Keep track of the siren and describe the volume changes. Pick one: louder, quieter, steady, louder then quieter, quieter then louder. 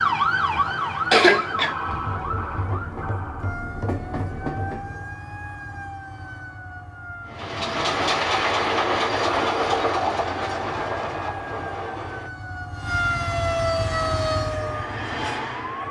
quieter then louder.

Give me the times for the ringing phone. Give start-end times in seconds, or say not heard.
not heard.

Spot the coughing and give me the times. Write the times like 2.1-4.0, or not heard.
1.1-1.8.